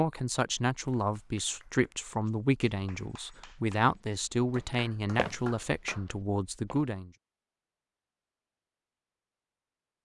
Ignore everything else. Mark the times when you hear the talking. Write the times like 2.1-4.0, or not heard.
0.0-7.1.